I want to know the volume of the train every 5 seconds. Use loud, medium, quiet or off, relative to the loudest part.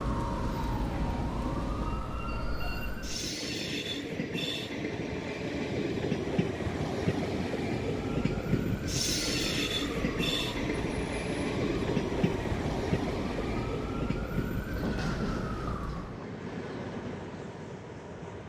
medium, loud, loud, medium.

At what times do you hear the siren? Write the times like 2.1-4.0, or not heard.
0.0-3.4, 7.9-16.2.